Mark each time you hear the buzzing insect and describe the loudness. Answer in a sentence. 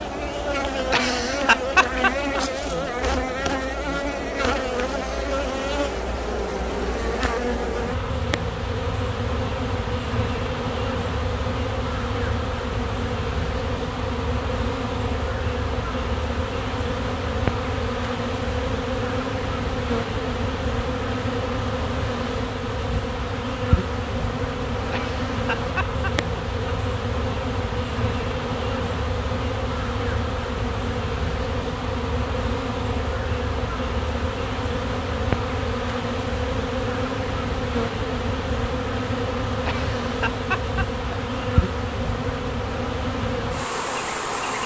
The buzzing insect can be heard from 0.0 to 44.6 s, at a steady volume.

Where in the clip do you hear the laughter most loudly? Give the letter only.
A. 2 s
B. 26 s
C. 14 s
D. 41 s
A.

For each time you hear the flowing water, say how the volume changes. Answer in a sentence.
You can't hear the flowing water here.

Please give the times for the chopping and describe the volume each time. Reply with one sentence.
You can't hear the chopping here.